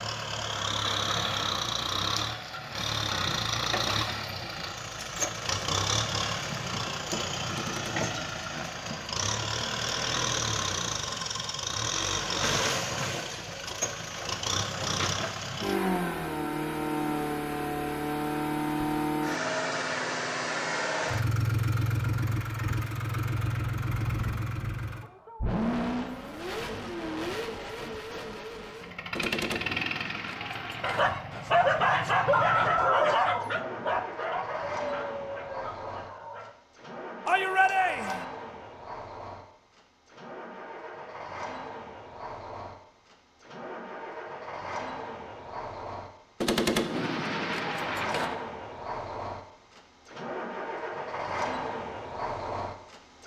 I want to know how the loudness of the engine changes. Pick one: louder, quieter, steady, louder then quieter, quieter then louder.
quieter.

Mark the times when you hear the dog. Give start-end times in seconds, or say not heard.
30.8-36.5.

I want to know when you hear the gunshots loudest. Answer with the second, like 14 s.
47 s.